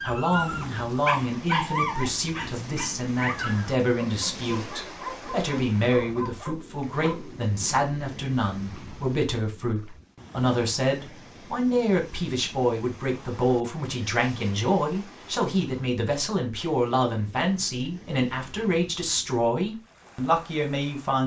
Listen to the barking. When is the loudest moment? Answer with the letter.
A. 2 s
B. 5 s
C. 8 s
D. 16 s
A.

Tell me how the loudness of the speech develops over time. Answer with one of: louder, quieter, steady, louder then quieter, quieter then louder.
steady.